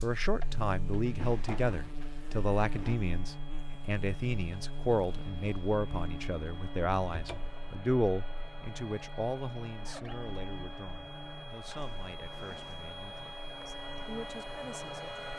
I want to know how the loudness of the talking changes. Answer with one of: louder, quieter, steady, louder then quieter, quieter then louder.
quieter.